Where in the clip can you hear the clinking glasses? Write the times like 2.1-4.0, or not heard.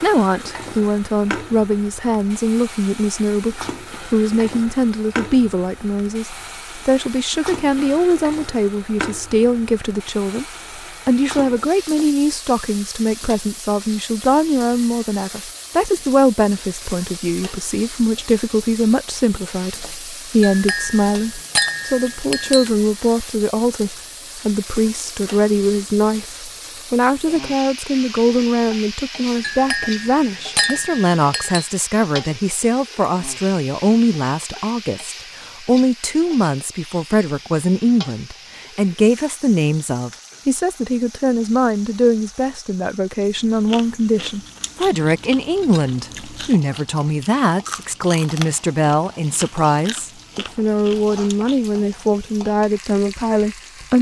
20.4-22.7, 29.4-31.7.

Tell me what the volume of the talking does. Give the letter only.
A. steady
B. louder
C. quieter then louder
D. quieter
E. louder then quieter
A.